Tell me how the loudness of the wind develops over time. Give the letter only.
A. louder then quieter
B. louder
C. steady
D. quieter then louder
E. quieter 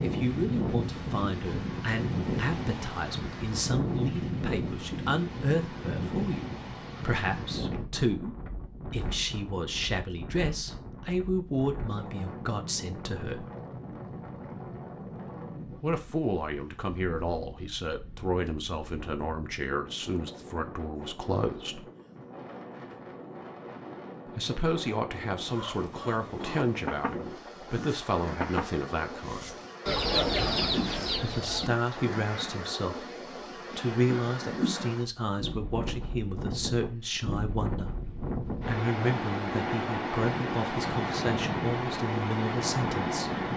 D.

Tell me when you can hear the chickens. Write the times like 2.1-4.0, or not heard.
25.5-31.9.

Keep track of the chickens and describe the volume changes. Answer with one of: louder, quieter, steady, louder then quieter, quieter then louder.
louder.